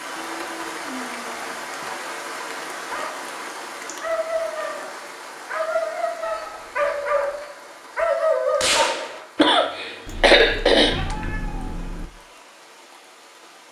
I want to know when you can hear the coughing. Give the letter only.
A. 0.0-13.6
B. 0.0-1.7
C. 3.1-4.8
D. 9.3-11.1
D.